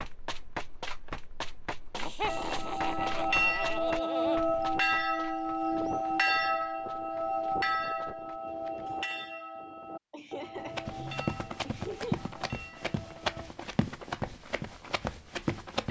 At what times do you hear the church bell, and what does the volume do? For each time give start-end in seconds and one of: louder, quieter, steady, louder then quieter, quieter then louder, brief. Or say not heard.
2.2-13.5 quieter.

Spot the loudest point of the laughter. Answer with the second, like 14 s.
2 s.